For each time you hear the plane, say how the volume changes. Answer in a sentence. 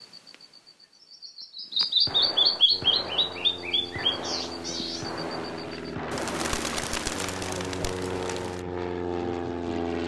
The plane can be heard from 2.7 to 10.0 s, getting louder.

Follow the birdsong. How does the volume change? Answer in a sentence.
The loudness of the birdsong goes up, then down.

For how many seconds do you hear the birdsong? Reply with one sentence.
You can hear the birdsong for 9 seconds altogether.